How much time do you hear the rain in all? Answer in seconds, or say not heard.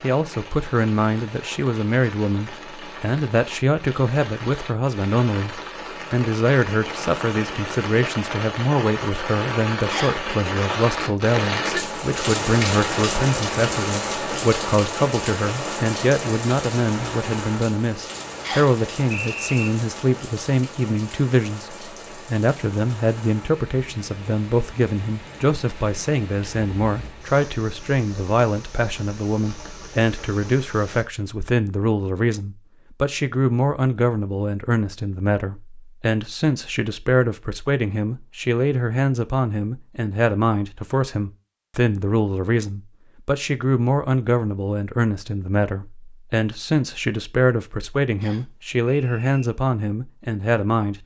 31 s.